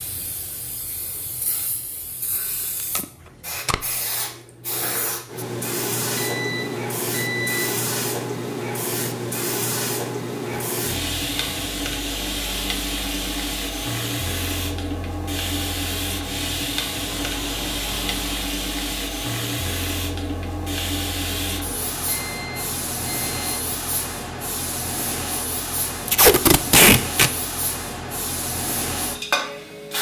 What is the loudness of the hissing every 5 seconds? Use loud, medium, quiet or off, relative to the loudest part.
medium, loud, loud, loud, loud, loud.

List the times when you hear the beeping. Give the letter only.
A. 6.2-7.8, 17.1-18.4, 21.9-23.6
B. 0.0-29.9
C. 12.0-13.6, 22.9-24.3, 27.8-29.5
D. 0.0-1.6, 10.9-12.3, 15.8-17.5
A.